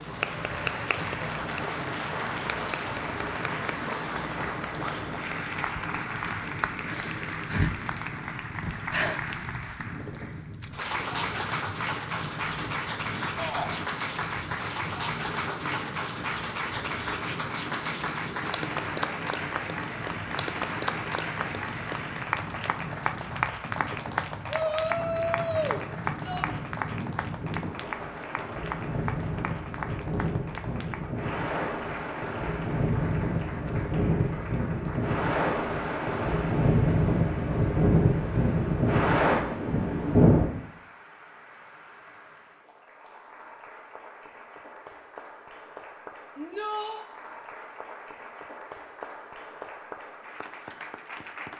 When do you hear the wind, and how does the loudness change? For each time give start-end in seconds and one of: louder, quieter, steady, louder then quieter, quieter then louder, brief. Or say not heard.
0.0-40.5 louder.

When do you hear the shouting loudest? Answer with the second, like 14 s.
25 s.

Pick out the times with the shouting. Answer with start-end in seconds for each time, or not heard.
13.3-13.8, 24.4-26.4, 46.4-47.0.